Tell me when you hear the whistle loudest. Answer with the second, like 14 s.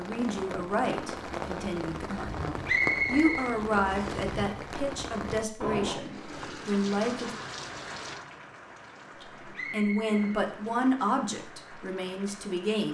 3 s.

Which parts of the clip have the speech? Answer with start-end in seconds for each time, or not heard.
0.0-7.3, 9.2-12.8.